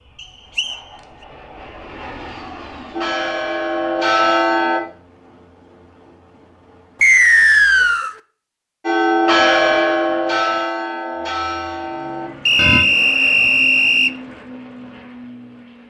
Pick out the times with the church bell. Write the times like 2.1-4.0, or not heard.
2.9-4.8, 8.8-12.8.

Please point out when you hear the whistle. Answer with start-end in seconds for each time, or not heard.
0.2-0.8, 7.0-8.1, 12.4-14.2.